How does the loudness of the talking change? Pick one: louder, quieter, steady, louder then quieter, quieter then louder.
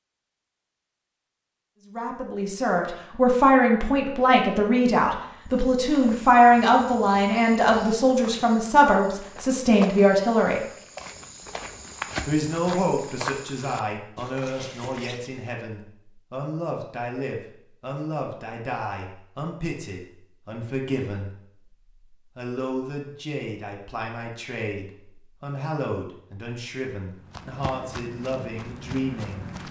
quieter.